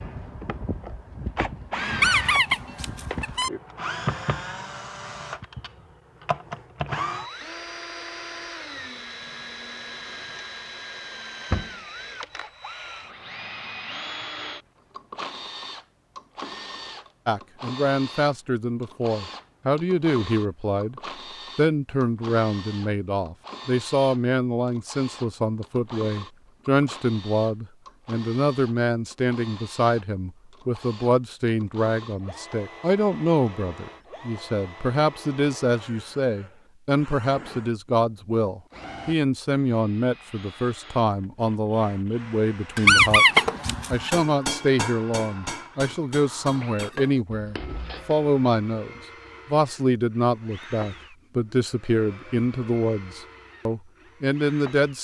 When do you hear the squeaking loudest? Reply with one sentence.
The loudest moment of the squeaking is at 43 seconds.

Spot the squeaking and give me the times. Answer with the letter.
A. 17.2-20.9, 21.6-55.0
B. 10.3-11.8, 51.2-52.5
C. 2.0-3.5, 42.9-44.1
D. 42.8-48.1
C.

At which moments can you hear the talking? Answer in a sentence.
The talking can be heard from 17.2 to 20.9 s and from 21.6 to 55.0 s.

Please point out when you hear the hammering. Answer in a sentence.
The hammering can be heard from 42.8 to 48.1 s.